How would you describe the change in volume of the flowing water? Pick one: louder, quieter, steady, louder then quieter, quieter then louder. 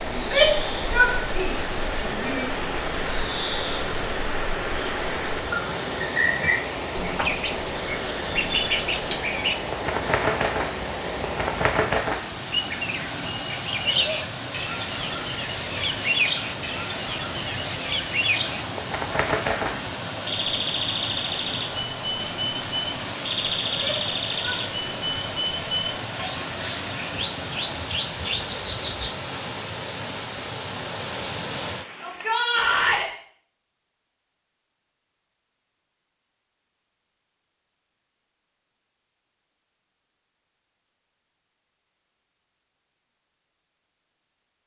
steady.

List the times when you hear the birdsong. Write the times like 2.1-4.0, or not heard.
0.0-29.1.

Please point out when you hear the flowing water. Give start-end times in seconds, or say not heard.
0.0-32.5.